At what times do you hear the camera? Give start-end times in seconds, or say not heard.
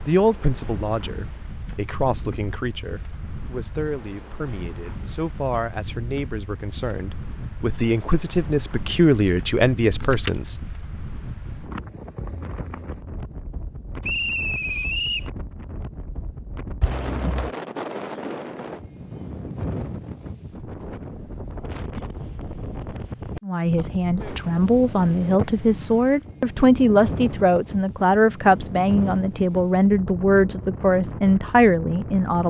9.8-10.5, 16.8-17.5.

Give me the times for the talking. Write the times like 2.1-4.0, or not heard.
0.1-10.7, 23.4-32.4.